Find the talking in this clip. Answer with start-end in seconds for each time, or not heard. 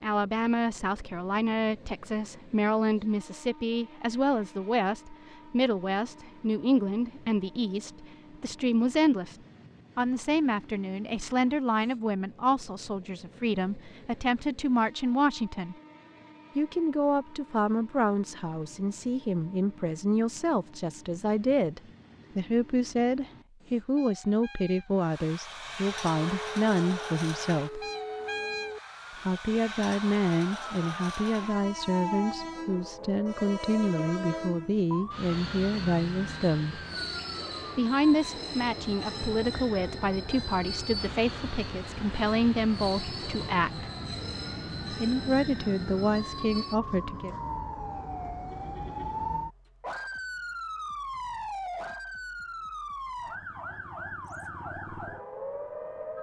0.0-9.3, 9.9-15.8, 16.6-27.9, 29.2-36.8, 37.8-43.9, 44.9-47.4.